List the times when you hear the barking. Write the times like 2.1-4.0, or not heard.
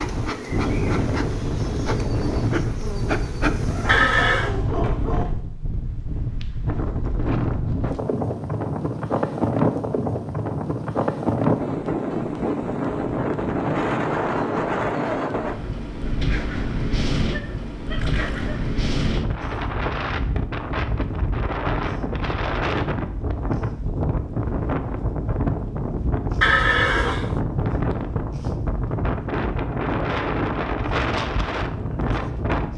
3.8-5.3, 17.3-19.1.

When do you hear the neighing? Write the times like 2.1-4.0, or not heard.
3.9-4.5, 17.9-18.6, 26.4-27.4.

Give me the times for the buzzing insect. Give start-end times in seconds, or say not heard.
0.0-4.7.